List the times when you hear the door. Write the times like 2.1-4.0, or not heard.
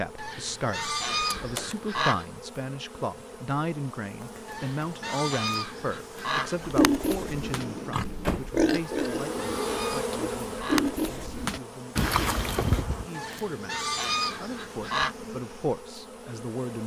1.2-1.8, 7.5-8.5, 11.9-13.1.